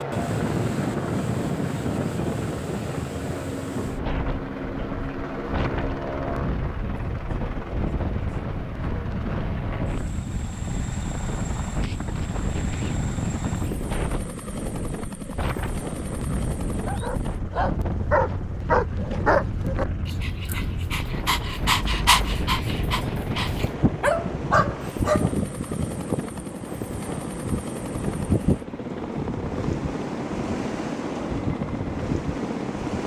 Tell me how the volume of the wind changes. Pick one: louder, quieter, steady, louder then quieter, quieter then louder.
steady.